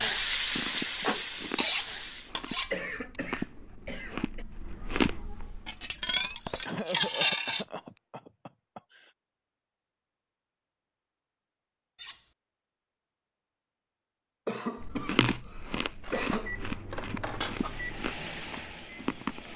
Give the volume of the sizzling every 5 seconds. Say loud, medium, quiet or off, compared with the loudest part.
loud, off, off, medium.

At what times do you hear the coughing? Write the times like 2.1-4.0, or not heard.
2.5-4.5, 6.7-9.1, 14.4-16.6.